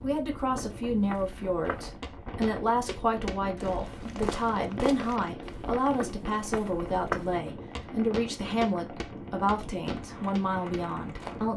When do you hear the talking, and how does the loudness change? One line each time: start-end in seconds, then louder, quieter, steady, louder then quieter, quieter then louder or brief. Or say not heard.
0.0-11.5 steady.